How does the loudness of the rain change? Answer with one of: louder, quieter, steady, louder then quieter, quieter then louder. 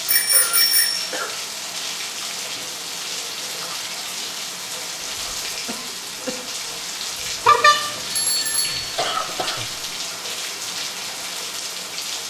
steady.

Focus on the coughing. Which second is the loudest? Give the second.
9 s.